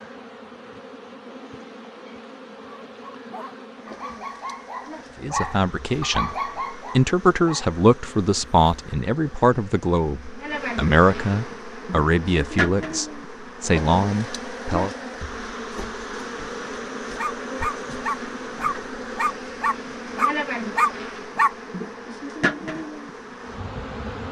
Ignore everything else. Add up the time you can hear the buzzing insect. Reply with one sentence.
You can hear the buzzing insect for 24 seconds altogether.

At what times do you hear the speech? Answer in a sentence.
You can hear the speech from 5.2 to 6.3 s and from 7.0 to 14.9 s.